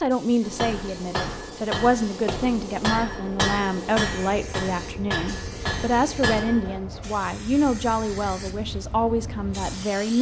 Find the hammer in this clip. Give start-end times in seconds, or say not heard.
0.4-6.8.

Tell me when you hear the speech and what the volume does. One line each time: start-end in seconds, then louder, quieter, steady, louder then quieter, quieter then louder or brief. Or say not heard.
0.0-10.1 steady.